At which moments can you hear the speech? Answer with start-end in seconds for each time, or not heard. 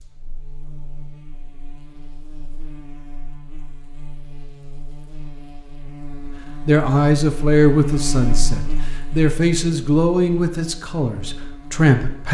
6.7-12.2.